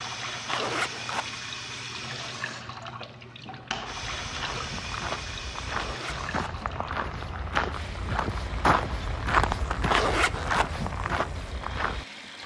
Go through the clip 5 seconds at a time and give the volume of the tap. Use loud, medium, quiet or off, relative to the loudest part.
loud, medium, medium.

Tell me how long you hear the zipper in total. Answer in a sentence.
The zipper can be heard for 2 seconds in total.